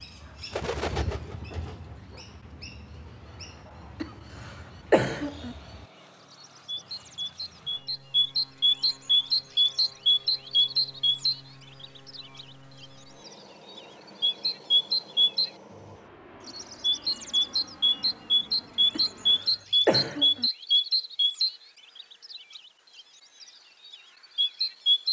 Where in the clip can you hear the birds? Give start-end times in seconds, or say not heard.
0.0-15.5, 16.4-22.6, 23.4-25.0.